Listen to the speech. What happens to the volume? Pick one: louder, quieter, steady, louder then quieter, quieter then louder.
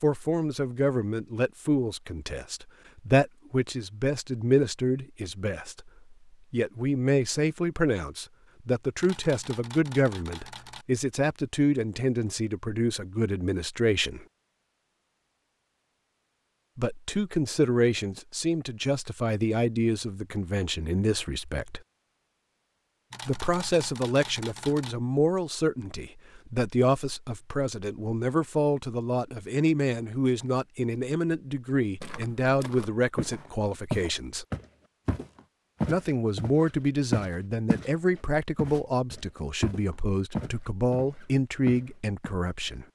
steady.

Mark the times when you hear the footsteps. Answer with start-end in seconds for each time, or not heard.
32.0-37.9, 38.5-42.4.